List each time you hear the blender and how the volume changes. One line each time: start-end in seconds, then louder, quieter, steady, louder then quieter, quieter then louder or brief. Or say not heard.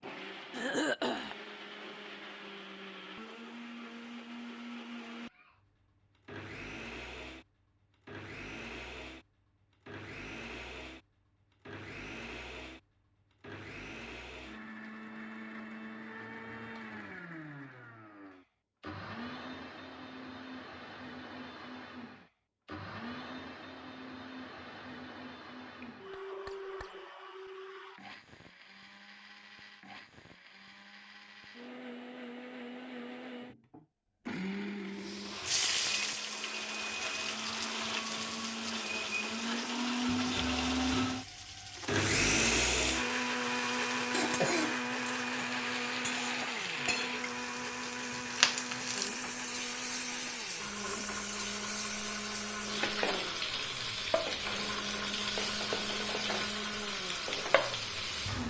0.0-58.4 louder then quieter.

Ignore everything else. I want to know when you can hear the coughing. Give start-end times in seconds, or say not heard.
0.5-1.4, 25.8-26.9, 44.1-44.8.